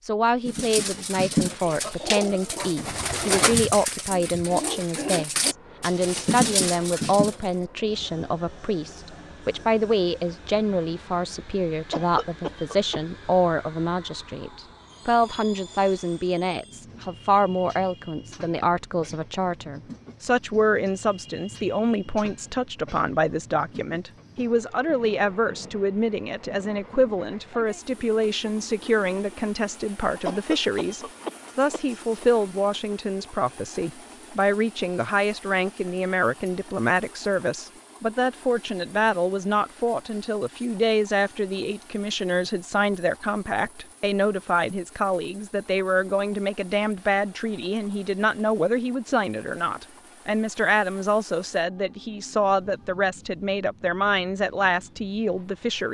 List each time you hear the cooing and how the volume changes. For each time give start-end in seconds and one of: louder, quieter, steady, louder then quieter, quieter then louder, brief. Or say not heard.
0.5-7.3 steady.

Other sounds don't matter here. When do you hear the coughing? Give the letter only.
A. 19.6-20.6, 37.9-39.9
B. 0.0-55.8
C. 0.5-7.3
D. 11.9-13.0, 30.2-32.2
D.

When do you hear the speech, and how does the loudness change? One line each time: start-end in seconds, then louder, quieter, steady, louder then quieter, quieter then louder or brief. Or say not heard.
0.0-55.8 steady.